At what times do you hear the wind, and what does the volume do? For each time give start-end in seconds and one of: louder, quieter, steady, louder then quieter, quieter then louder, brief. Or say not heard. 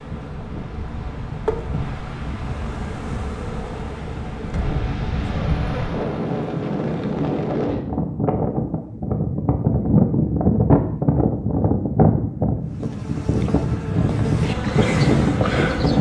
0.0-15.9 louder.